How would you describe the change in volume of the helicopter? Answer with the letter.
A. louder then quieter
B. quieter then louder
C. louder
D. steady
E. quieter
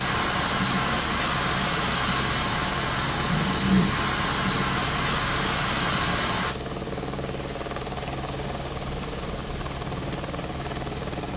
D.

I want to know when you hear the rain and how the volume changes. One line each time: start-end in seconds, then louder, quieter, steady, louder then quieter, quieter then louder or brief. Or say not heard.
0.0-6.5 steady.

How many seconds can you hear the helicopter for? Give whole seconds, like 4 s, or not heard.
11 s.